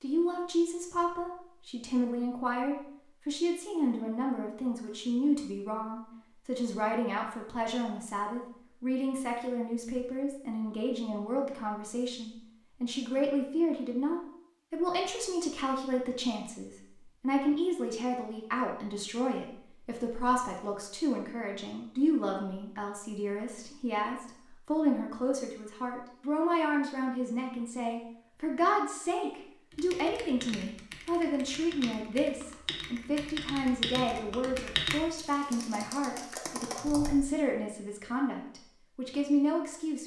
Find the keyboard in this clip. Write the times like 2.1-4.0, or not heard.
29.7-37.1.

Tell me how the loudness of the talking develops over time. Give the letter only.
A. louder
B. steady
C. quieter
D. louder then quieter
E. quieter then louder
B.